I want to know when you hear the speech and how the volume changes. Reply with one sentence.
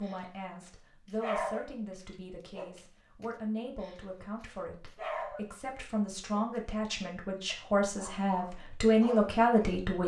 The speech can be heard from 0.0 to 10.0 s, getting louder.